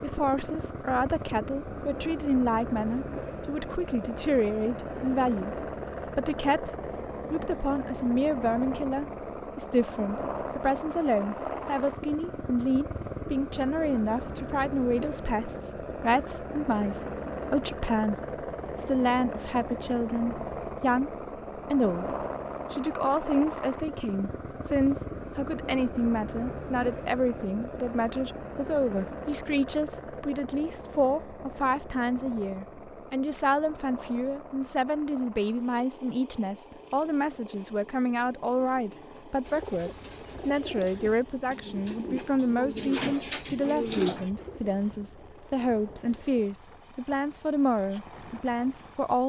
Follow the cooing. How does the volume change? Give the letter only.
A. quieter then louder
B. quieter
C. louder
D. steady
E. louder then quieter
C.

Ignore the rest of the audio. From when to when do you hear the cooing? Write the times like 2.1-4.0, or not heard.
39.4-44.8.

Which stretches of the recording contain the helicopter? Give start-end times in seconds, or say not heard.
0.0-49.2.